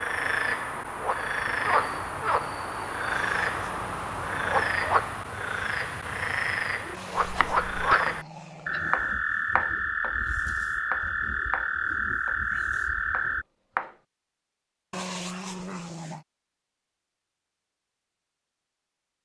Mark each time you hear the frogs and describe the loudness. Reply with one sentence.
You can hear the frogs from 0.0 to 13.4 s, at a steady volume.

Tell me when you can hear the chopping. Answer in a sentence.
The chopping can be heard from 7.2 to 8.2 s, from 8.9 to 10.2 s, from 10.9 to 12.4 s and from 13.1 to 13.9 s.